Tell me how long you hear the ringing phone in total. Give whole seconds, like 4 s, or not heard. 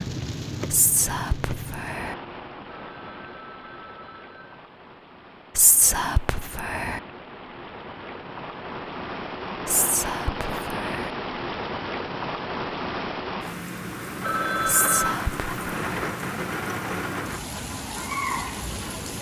3 s.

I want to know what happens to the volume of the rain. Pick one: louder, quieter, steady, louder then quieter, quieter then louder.
quieter then louder.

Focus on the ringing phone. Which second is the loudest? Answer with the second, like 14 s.
15 s.